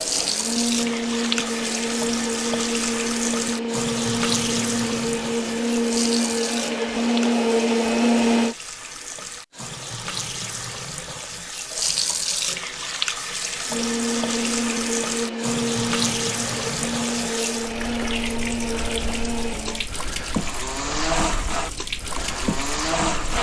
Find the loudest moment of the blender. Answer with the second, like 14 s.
8 s.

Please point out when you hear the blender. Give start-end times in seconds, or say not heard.
0.0-8.6, 13.7-23.3.